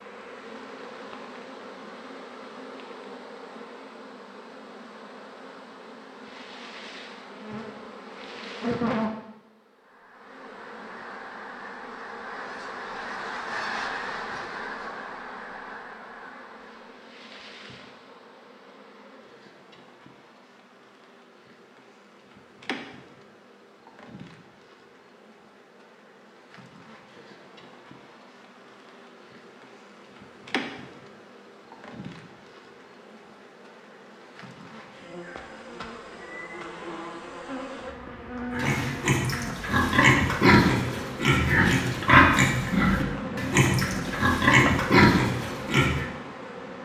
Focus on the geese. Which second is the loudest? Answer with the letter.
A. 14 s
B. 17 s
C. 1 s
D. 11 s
A.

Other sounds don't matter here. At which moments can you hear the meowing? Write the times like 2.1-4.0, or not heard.
not heard.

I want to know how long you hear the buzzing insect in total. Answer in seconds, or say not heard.
47 s.